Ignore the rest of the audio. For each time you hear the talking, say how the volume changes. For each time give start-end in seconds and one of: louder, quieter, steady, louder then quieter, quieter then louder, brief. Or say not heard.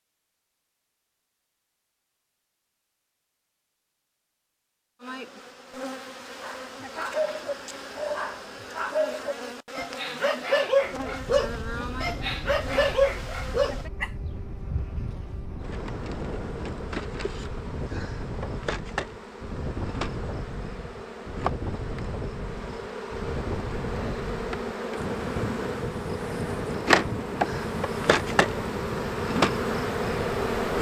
not heard.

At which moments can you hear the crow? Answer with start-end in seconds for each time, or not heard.
not heard.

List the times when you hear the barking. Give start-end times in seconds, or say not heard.
6.4-14.1.